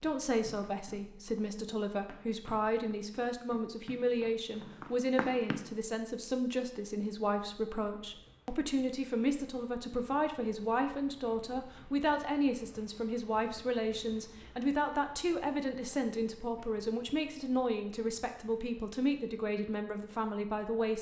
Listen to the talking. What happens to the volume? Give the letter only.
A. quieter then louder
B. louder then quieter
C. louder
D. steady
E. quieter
D.